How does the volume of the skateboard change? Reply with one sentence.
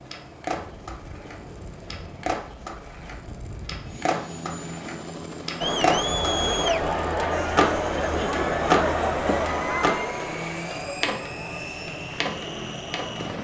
The volume of the skateboard goes up, then down.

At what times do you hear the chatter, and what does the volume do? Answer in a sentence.
You can hear the chatter from 5.6 to 13.3 s, getting quieter.